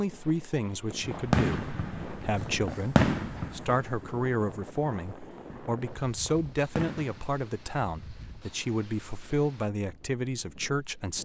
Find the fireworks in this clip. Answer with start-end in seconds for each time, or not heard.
1.0-7.2.